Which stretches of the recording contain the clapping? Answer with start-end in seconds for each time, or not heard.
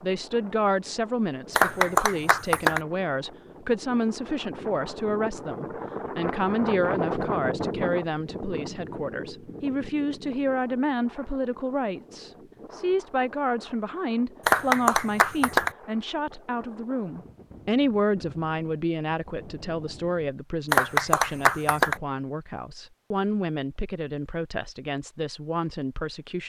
1.6-2.8, 14.4-15.7, 20.7-21.9.